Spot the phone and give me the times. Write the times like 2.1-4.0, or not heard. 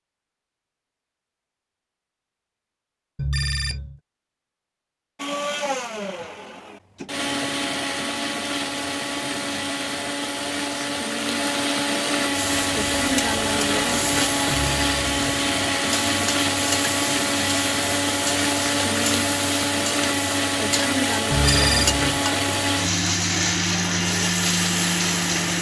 3.1-4.0, 14.5-15.3, 21.3-22.2.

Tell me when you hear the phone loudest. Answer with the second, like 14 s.
22 s.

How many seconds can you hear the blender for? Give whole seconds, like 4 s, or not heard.
20 s.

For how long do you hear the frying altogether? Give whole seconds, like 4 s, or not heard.
13 s.